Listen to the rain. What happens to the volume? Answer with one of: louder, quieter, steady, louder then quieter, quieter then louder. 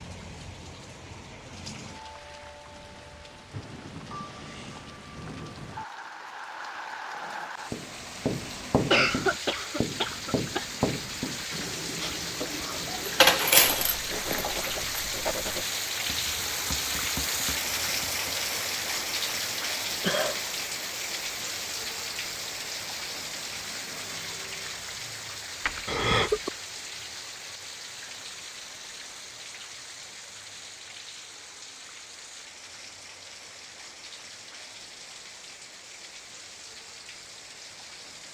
louder then quieter.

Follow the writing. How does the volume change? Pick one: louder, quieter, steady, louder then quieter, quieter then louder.
quieter.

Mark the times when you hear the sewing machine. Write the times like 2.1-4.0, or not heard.
not heard.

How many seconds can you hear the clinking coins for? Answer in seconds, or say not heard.
2 s.